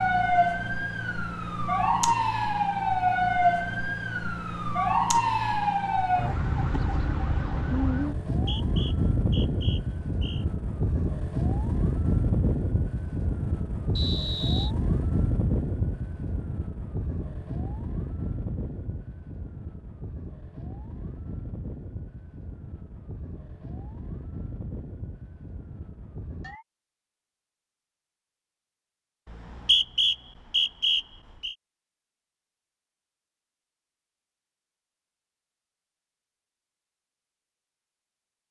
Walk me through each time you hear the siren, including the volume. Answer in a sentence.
The siren can be heard from 0.0 to 26.6 s, getting quieter.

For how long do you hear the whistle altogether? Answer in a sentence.
The whistle can be heard for 5 seconds in total.